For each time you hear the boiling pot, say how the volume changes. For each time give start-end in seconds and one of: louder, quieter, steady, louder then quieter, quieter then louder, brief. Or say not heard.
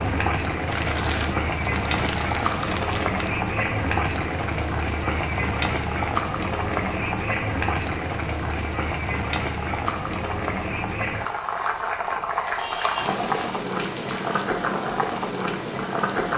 0.0-16.3 steady.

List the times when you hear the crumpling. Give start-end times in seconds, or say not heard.
0.7-3.3, 12.4-14.4.